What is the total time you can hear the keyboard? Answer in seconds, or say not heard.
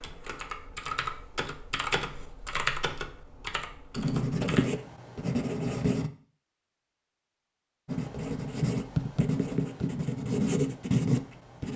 5 s.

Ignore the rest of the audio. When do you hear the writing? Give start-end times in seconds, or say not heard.
4.0-6.1, 7.8-11.7.